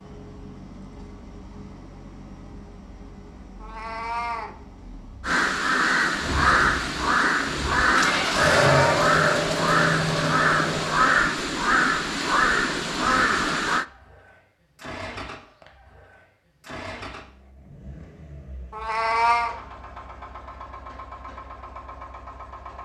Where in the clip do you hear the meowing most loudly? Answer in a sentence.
The volume of the meowing peaks at 19 seconds.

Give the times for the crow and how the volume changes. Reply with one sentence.
The crow can be heard from 5.2 to 13.8 s, at a steady volume.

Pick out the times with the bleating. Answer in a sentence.
You can't hear the bleating here.